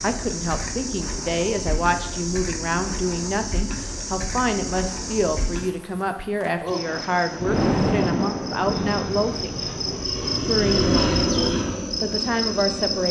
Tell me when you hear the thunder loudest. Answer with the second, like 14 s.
8 s.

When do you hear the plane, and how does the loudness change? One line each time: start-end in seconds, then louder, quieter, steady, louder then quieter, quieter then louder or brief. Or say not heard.
8.8-13.0 louder then quieter.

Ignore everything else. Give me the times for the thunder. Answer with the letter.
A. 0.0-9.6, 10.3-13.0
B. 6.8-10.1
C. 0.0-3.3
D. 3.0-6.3
B.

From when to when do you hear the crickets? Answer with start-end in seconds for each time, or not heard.
0.0-13.0.